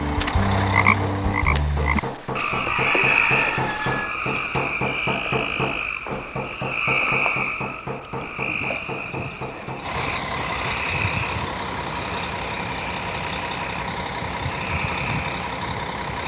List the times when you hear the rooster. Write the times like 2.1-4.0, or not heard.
1.5-4.2.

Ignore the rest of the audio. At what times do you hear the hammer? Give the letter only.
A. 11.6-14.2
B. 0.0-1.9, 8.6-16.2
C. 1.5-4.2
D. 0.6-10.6
D.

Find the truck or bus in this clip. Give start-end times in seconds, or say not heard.
0.0-1.9, 8.6-16.2.